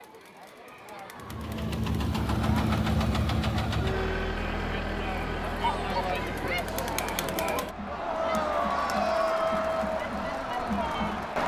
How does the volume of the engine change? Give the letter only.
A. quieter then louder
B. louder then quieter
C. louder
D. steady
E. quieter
E.